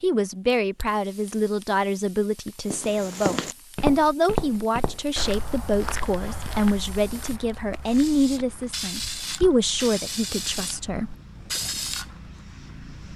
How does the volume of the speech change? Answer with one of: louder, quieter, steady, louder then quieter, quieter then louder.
steady.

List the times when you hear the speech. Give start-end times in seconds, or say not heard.
0.0-11.2.